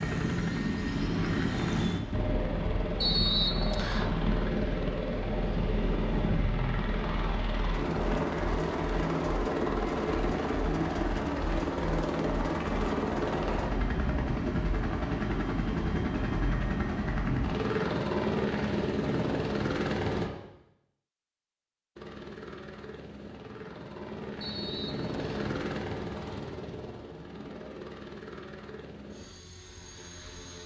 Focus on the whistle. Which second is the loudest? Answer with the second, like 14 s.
3 s.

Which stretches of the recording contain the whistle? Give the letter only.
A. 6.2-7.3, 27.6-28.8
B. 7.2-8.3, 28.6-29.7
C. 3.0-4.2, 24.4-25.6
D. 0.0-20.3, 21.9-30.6
C.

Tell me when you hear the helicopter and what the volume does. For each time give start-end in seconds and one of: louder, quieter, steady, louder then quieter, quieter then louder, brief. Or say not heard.
0.0-20.3 steady
21.9-30.6 louder then quieter.